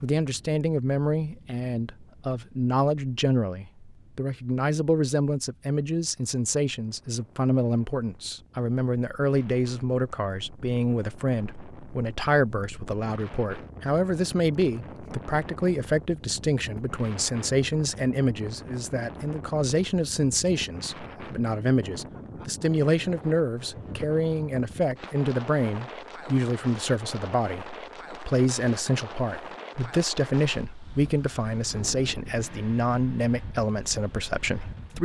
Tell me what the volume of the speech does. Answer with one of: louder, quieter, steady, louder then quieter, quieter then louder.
steady.